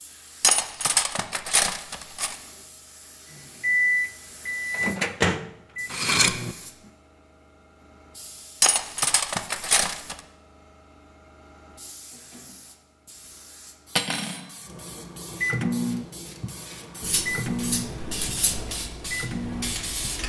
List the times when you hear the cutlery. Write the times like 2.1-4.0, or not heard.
0.4-2.4, 5.9-6.3, 8.6-10.2, 13.9-14.4, 17.0-18.6.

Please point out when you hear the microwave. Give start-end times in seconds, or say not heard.
3.4-6.9, 14.7-20.2.